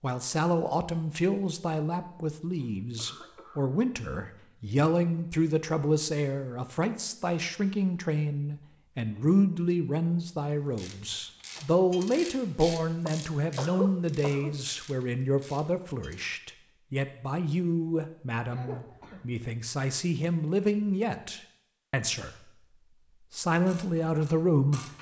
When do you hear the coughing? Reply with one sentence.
The coughing can be heard from 2.5 to 3.8 s, from 13.1 to 14.6 s and from 18.5 to 19.4 s.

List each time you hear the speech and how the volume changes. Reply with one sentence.
The speech can be heard from 0.0 to 22.5 s, at a steady volume; and briefly from 23.3 to 24.8 s.